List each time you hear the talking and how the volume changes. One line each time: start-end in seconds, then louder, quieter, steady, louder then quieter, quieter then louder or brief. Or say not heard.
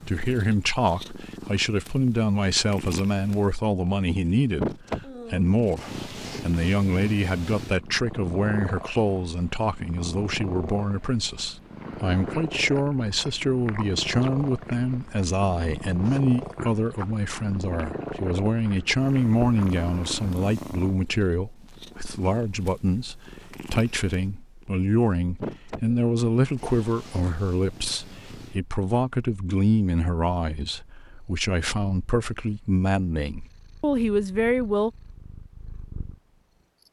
0.1-34.9 steady.